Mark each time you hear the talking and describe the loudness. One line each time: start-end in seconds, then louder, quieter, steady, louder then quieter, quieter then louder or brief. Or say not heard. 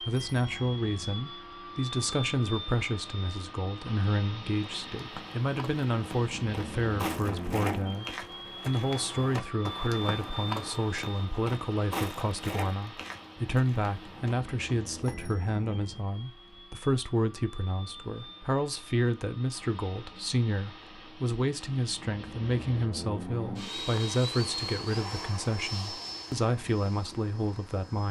0.0-28.0 steady.